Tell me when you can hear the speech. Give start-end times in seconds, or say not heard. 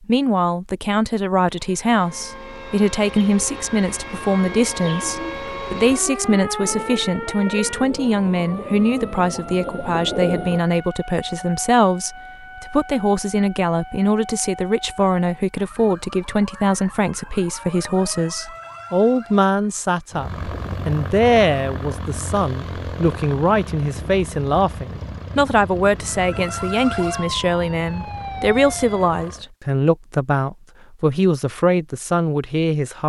0.1-33.0.